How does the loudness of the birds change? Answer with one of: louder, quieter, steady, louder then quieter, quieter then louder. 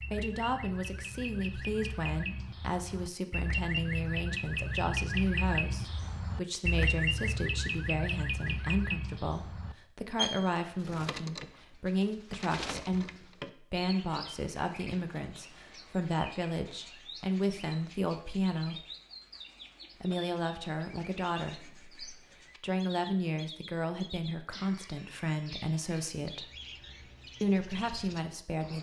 quieter.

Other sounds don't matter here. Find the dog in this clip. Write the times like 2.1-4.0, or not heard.
not heard.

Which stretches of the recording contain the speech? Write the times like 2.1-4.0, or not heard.
0.1-18.8, 20.0-26.4, 27.4-28.7.